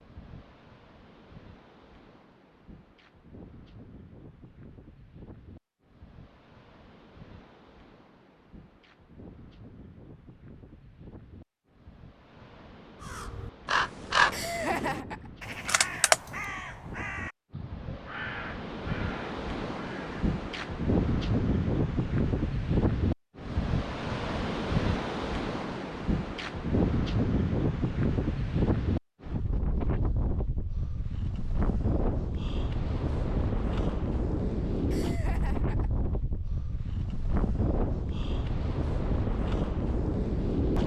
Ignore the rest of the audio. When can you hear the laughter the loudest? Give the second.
15 s.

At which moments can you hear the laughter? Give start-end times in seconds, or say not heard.
14.3-15.3, 34.9-36.1.